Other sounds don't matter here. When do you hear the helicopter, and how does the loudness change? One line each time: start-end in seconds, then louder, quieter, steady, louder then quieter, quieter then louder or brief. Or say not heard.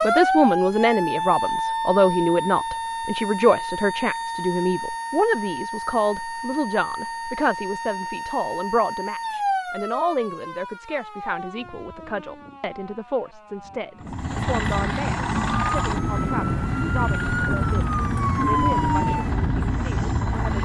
13.9-20.5 steady.